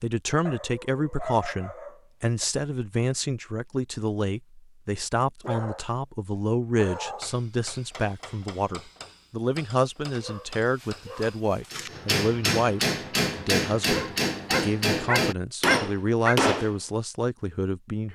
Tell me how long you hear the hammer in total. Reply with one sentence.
You can hear the hammer for 10 seconds altogether.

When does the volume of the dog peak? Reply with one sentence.
The loudest moment of the dog is at 16 seconds.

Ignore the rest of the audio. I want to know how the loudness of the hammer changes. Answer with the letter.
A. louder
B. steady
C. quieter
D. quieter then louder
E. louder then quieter
A.